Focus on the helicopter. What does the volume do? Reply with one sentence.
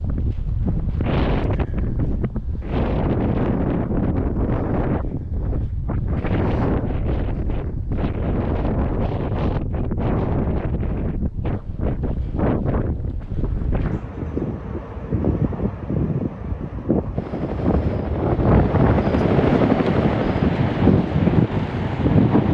The loudness of the helicopter goes up, then down.